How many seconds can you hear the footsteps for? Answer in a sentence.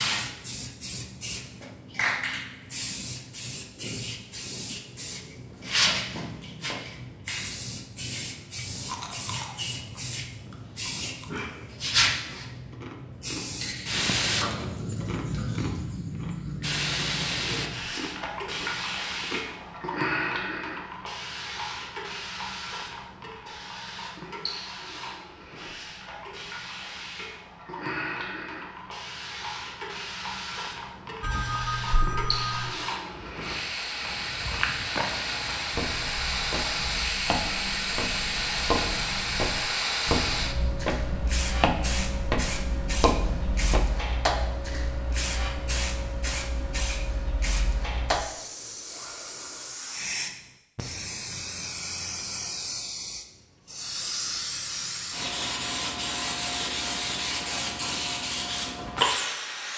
You can hear the footsteps for 11 seconds altogether.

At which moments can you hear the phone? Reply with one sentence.
The phone can be heard from 31.2 to 32.7 s.